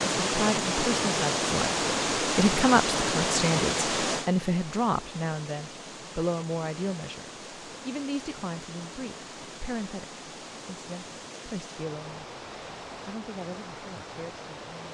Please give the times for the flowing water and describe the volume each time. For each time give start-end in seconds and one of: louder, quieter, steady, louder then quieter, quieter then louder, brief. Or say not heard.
0.0-14.8 quieter.